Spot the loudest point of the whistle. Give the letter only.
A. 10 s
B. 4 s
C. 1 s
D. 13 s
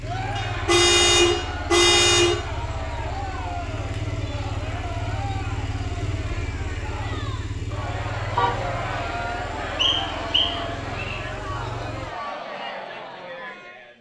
A.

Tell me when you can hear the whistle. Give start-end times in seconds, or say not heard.
9.8-11.2.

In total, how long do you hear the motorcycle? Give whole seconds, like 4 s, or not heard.
12 s.